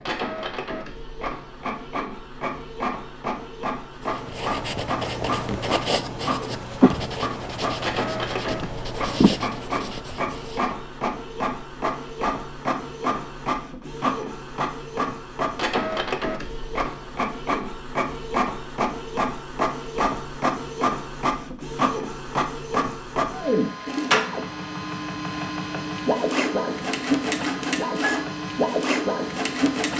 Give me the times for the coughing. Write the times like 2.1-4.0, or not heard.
not heard.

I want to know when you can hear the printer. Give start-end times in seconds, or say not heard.
0.0-29.9.